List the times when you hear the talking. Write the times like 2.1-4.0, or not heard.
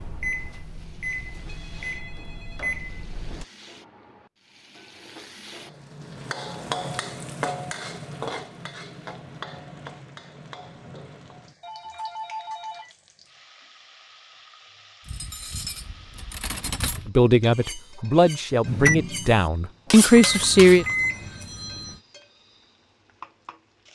17.1-20.9.